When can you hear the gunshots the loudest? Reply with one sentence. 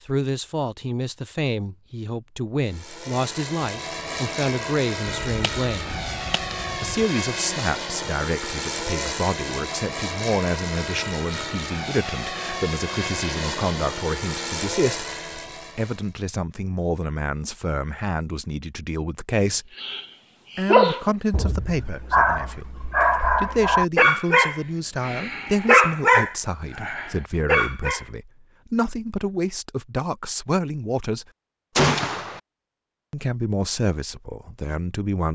The loudest moment of the gunshots is at 32 seconds.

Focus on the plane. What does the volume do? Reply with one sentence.
The loudness of the plane stays about the same.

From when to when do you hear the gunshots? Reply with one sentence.
You can hear the gunshots from 5.0 to 7.0 s and from 31.8 to 32.4 s.